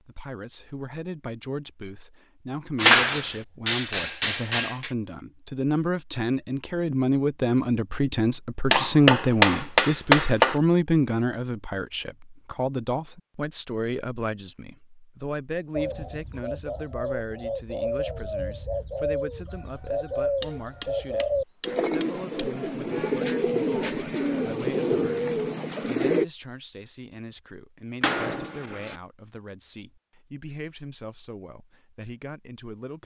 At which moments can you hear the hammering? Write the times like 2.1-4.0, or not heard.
2.8-4.9, 8.7-10.6, 20.4-22.4, 28.0-28.9.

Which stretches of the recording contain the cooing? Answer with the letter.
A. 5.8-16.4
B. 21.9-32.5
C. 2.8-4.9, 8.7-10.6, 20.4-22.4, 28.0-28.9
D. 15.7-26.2
D.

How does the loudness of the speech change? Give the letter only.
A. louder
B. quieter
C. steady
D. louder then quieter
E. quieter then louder
D.